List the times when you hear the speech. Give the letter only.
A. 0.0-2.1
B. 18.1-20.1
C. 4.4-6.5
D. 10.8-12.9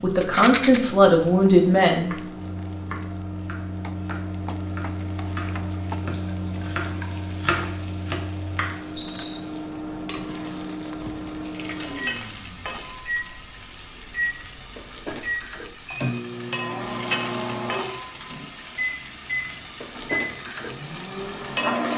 A.